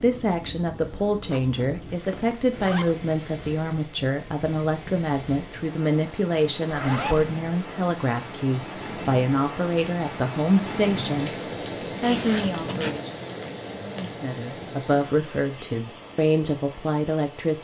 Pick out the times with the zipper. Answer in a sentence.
The zipper can be heard from 1.3 to 3.1 s, from 6.7 to 7.2 s and from 12.0 to 13.1 s.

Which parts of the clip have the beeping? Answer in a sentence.
You can't hear the beeping here.